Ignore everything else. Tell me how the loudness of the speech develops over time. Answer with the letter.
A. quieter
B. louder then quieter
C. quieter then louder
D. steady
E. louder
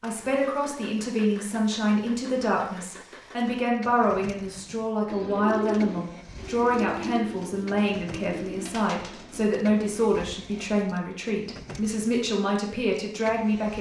D.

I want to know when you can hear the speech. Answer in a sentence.
You can hear the speech from 0.0 to 13.7 s.